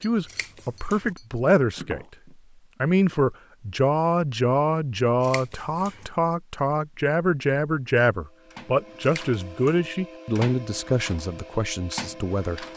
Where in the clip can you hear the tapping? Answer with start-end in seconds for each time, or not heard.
0.0-2.4.